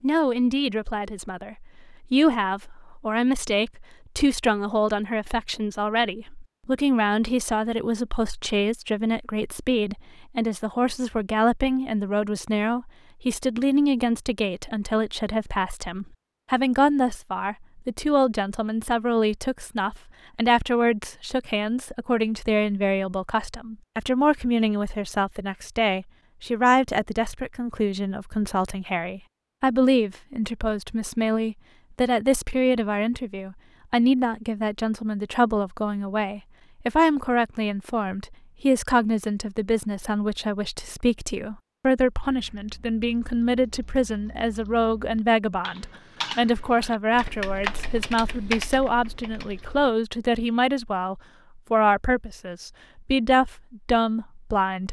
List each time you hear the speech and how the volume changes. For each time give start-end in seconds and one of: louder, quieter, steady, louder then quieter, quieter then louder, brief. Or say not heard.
0.0-54.8 steady.